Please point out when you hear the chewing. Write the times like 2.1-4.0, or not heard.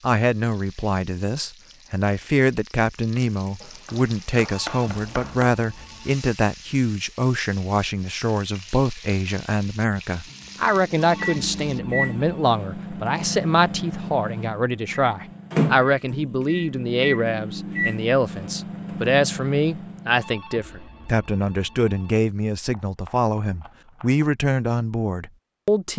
not heard.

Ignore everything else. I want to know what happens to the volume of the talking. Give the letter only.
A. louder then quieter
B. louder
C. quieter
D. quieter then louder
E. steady
E.